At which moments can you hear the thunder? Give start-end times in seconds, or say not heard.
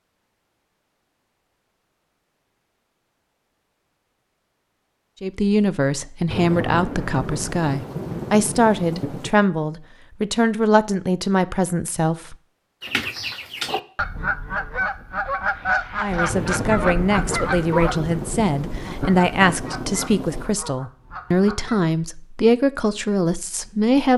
6.3-9.3, 16.2-20.6.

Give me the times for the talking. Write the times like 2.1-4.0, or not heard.
5.2-12.3, 15.9-24.1.